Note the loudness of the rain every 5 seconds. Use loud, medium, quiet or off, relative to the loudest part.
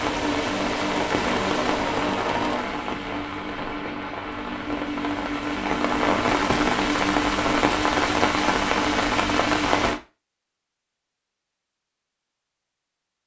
medium, loud, off.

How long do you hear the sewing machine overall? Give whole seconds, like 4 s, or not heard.
3 s.